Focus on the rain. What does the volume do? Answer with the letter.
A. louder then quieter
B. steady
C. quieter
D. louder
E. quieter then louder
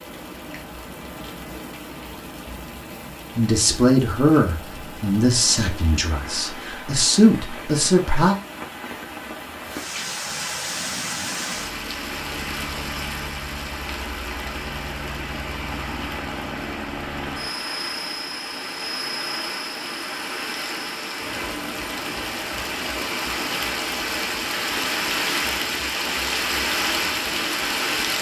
D.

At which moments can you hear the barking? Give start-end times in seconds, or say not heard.
not heard.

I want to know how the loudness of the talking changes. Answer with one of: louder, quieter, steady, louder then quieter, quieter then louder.
quieter then louder.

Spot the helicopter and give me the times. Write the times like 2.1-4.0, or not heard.
10.7-28.1.